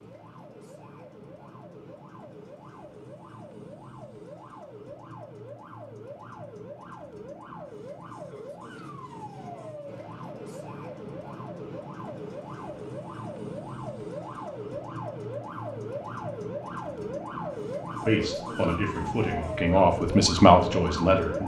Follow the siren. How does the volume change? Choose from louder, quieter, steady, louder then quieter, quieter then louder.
louder.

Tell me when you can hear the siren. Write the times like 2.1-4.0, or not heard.
0.0-21.4.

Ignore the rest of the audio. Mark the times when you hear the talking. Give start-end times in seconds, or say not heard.
18.0-21.4.